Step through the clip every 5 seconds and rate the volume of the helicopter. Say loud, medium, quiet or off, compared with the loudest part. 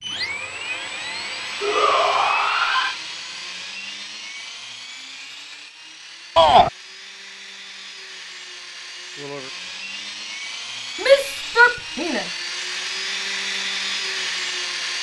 loud, medium, loud.